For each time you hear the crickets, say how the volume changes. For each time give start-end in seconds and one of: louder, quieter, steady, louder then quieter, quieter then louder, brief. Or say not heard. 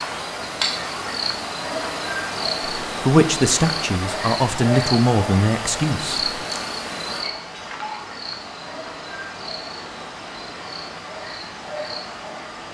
0.0-12.6 quieter.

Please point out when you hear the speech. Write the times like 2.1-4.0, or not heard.
2.9-6.3.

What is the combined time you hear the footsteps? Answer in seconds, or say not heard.
not heard.